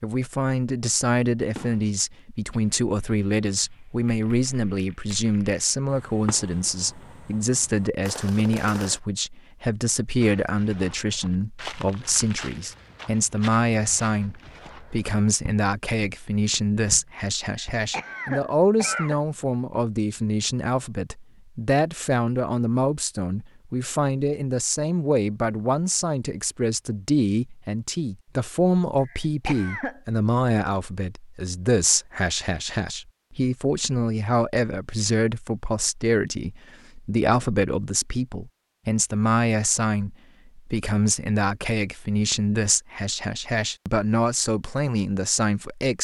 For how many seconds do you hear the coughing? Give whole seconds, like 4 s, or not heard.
3 s.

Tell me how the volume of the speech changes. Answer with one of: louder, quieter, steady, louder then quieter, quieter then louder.
steady.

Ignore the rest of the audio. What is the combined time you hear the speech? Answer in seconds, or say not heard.
46 s.